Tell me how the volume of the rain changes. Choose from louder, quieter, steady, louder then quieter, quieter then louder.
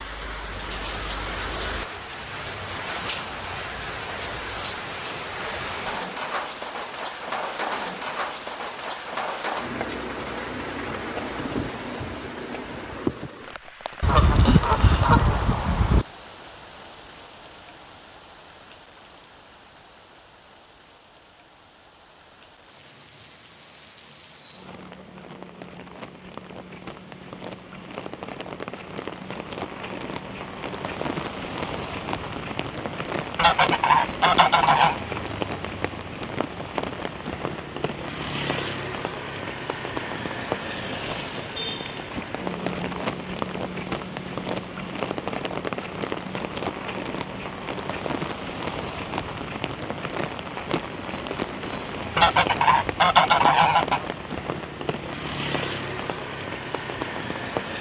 quieter then louder.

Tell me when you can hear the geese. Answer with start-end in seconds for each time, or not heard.
14.0-16.1, 33.4-35.0, 52.1-54.0.